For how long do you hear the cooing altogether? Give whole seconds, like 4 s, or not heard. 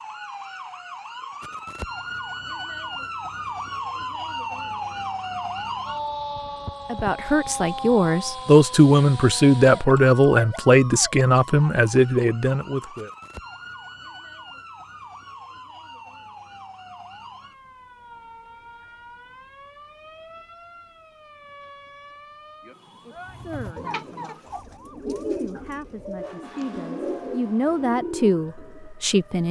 6 s.